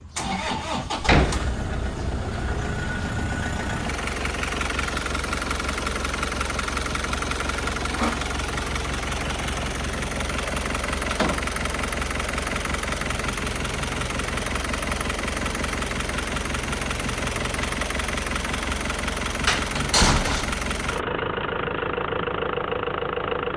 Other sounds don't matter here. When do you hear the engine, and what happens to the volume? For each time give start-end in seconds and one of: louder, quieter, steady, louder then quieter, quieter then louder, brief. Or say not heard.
0.0-23.5 steady.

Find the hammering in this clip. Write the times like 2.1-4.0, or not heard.
not heard.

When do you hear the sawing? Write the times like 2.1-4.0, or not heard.
7.4-8.2.